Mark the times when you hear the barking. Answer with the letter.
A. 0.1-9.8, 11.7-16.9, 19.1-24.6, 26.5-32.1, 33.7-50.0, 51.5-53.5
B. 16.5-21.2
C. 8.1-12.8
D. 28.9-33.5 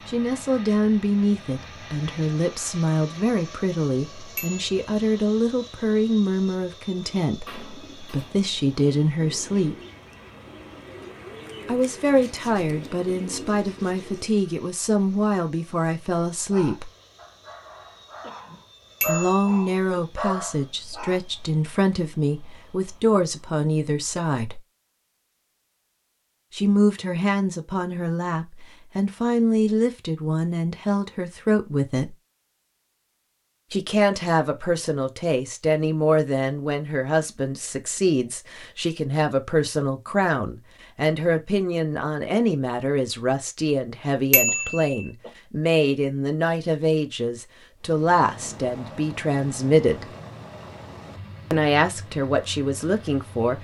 B.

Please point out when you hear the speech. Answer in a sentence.
You can hear the speech from 0.1 to 9.8 s, from 11.7 to 16.9 s, from 19.1 to 24.6 s, from 26.5 to 32.1 s, from 33.7 to 50.0 s and from 51.5 to 53.5 s.